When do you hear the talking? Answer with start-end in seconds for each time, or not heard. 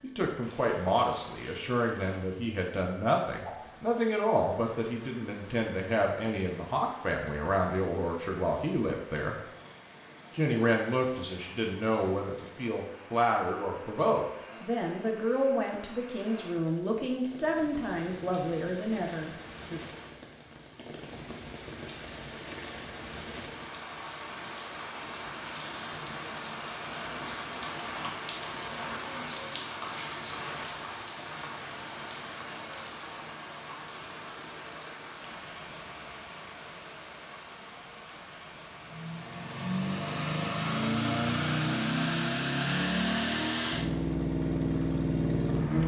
0.0-9.3, 10.3-19.8.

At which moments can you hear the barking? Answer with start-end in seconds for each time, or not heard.
not heard.